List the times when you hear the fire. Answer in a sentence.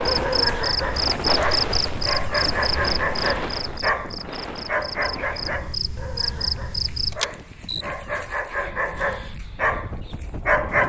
The fire can't be heard in this clip.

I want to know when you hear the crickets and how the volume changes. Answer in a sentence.
The crickets can be heard from 0.0 to 7.8 s, getting quieter then louder.